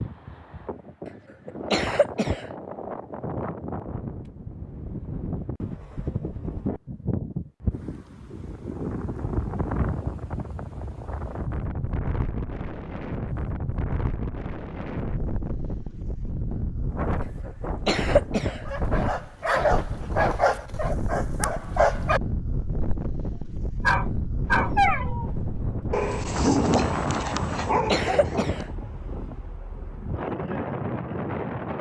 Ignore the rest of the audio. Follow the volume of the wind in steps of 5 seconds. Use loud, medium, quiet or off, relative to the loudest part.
medium, loud, loud, loud, loud, loud, loud.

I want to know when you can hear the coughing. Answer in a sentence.
The coughing can be heard from 1.4 to 2.5 s, from 17.6 to 18.6 s and from 27.9 to 28.6 s.